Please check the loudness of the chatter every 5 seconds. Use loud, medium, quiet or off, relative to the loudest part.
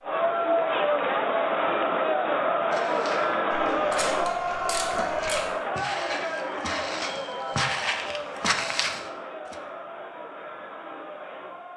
loud, medium, quiet.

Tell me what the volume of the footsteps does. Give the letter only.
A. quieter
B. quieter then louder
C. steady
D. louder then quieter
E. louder
E.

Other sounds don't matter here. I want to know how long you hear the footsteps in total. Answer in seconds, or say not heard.
7 s.